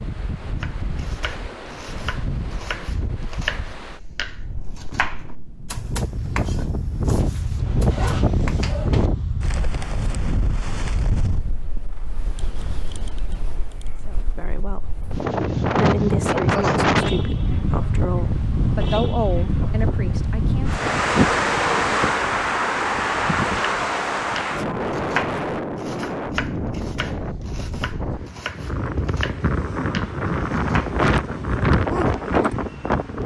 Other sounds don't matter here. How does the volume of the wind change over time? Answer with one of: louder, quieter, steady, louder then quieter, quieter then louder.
louder.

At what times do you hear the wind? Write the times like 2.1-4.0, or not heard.
0.0-33.2.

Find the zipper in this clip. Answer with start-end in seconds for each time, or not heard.
7.2-9.1.